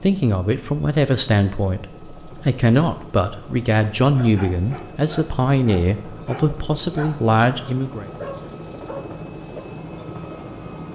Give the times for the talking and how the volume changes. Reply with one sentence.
You can hear the talking from 0.0 to 8.1 s, at a steady volume.